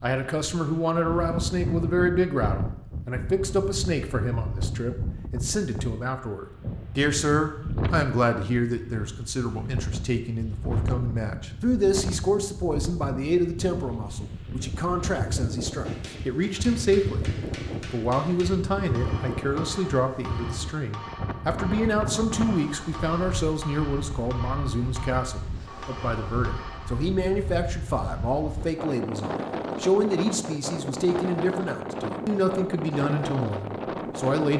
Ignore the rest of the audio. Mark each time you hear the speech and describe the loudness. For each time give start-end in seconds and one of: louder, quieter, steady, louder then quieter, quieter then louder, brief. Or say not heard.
0.0-34.5 steady.